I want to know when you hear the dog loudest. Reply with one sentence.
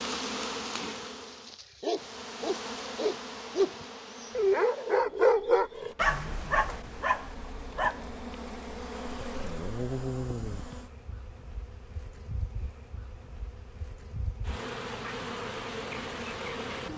The loudest moment of the dog is at 5 seconds.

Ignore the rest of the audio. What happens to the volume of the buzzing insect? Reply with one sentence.
The loudness of the buzzing insect goes down, then up.